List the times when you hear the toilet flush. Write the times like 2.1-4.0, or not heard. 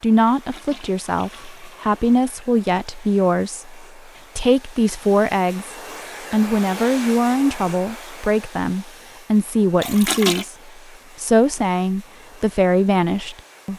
0.3-2.5, 9.8-10.4.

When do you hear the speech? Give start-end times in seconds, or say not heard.
0.0-5.7, 6.3-10.6, 11.2-13.7.